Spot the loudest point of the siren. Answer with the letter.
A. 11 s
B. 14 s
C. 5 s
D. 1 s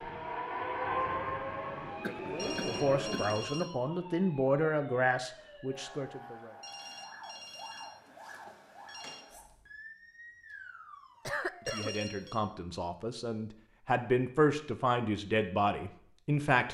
D.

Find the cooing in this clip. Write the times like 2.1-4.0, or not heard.
not heard.